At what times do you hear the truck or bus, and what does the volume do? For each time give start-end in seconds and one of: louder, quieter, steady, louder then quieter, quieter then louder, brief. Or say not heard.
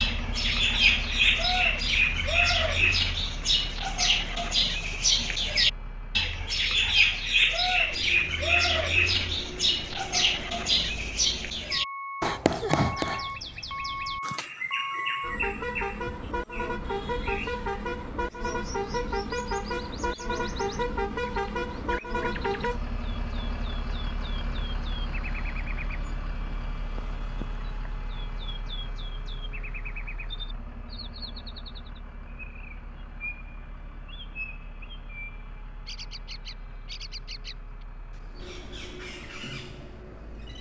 0.0-40.5 louder then quieter.